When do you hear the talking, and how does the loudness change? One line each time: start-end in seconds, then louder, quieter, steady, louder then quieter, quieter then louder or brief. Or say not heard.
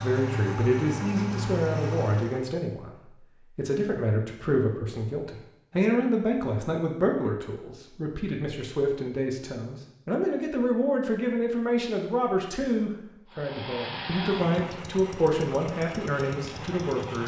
0.0-17.2 steady.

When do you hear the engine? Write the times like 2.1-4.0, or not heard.
0.0-2.5, 13.2-17.2.